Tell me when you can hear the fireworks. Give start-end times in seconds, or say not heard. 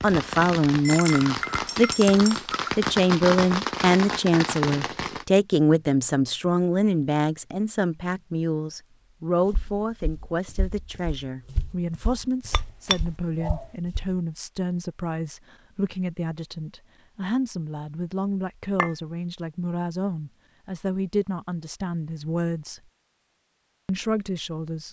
0.0-5.2.